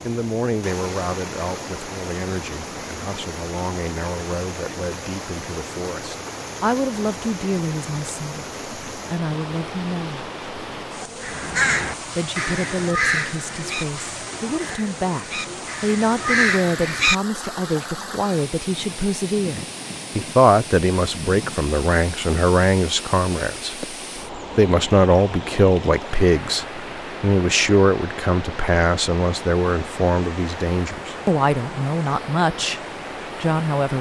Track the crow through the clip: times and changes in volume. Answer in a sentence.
You can hear the crow from 11.2 to 17.5 s, getting quieter then louder.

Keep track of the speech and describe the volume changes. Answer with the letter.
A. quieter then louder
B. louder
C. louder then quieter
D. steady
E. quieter
B.